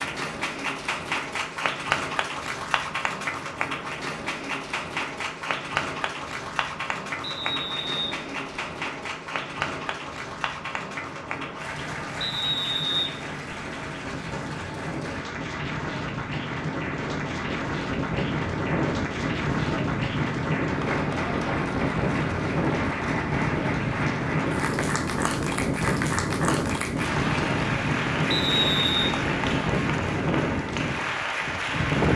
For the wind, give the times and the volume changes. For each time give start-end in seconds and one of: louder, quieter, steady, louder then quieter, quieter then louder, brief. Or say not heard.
0.0-32.1 louder.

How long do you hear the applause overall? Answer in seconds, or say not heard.
32 s.